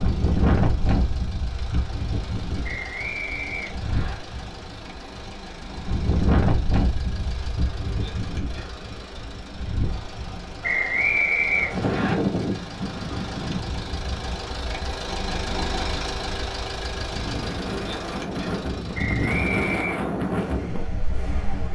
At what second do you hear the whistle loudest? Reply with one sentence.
The volume of the whistle peaks at 11 seconds.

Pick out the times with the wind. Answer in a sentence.
You can hear the wind from 0.0 to 21.6 s.